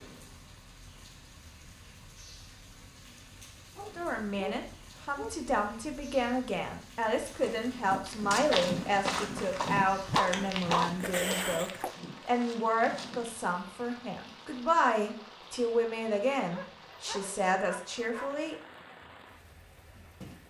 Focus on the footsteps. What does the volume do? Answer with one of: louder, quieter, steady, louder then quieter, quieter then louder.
quieter.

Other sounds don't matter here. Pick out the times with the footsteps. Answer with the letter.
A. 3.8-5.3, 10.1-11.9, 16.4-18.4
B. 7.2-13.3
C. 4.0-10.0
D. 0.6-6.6
B.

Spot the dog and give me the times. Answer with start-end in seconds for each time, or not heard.
3.8-5.3, 10.1-11.9, 16.4-18.4.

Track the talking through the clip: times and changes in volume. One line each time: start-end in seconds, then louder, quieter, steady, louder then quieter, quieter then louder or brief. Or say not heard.
4.0-18.6 steady.